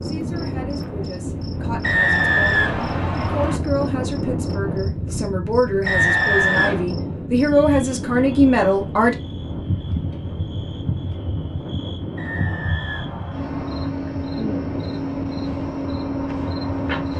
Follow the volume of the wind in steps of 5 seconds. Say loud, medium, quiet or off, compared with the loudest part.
loud, loud, medium, medium.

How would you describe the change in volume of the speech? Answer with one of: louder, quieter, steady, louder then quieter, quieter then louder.
louder.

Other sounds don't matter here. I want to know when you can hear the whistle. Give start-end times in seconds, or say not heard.
1.8-3.6, 5.8-6.8, 12.2-13.9.